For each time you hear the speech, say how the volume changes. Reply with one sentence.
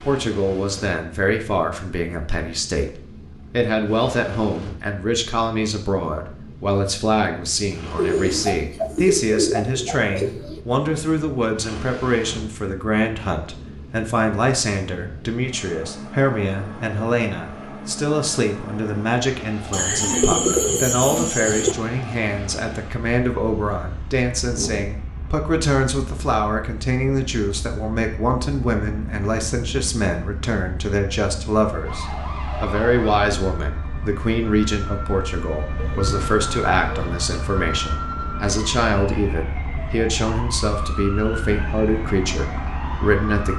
You can hear the speech from 0.0 to 43.5 s, at a steady volume.